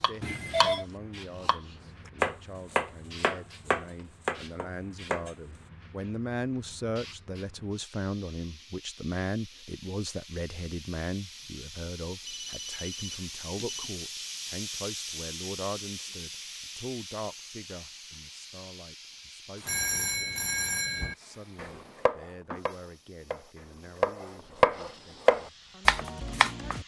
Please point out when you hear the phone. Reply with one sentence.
You can hear the phone from 0.2 to 0.8 s, from 12.2 to 13.9 s and from 19.6 to 21.1 s.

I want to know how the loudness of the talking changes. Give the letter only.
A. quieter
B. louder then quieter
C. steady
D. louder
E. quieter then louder
B.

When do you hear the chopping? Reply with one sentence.
The chopping can be heard from 0.0 to 0.8 s, from 1.4 to 5.3 s and from 21.0 to 26.8 s.